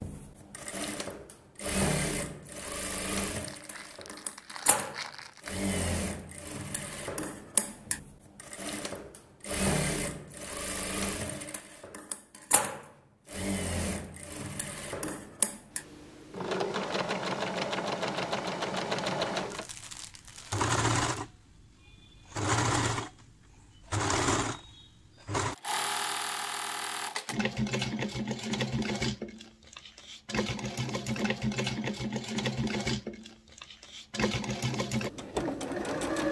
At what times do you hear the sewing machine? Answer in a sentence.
You can hear the sewing machine from 0.0 to 36.2 s.